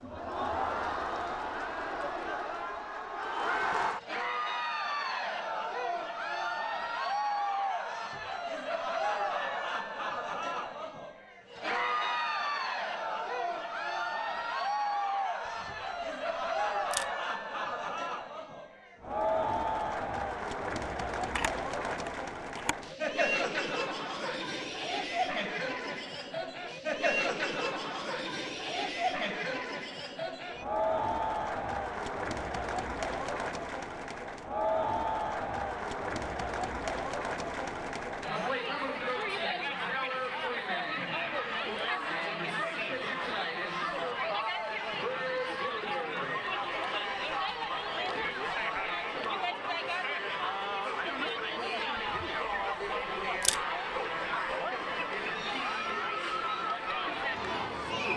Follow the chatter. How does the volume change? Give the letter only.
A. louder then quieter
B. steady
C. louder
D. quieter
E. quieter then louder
B.